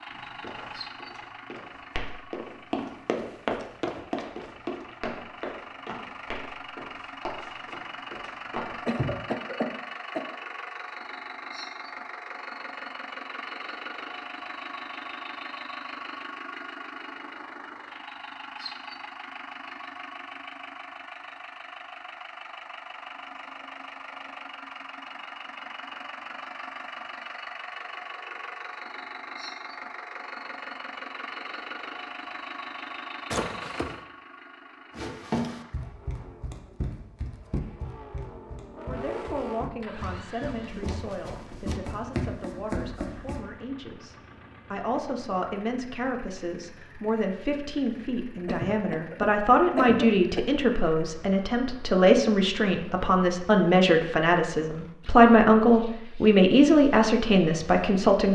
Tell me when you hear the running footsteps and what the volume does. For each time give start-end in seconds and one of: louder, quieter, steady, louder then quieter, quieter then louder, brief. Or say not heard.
0.1-9.1 louder then quieter
35.0-43.5 quieter then louder.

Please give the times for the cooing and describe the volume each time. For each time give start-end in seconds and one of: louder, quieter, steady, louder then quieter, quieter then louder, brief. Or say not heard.
not heard.